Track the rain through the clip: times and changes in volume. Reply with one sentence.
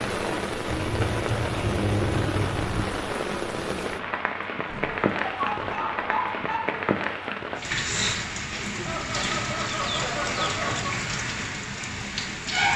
The rain can be heard from 0.0 to 12.7 s, at a steady volume.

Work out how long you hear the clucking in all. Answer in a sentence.
The clucking can be heard for 6 seconds in total.